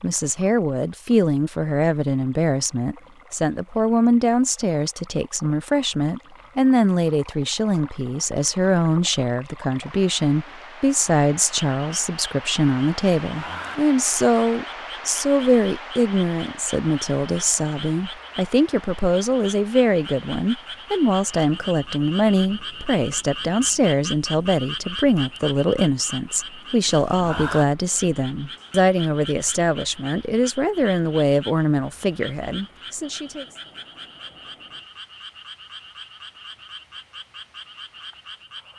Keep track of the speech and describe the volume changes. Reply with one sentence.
The volume of the speech stays about the same.